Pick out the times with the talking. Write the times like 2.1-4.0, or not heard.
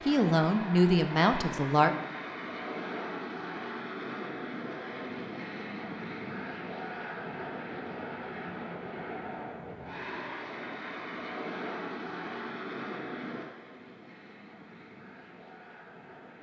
0.0-1.9.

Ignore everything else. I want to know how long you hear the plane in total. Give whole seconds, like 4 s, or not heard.
16 s.